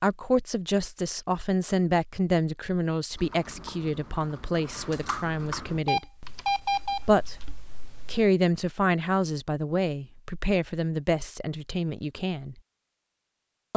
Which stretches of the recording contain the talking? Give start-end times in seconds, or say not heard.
0.0-6.2, 7.0-12.6.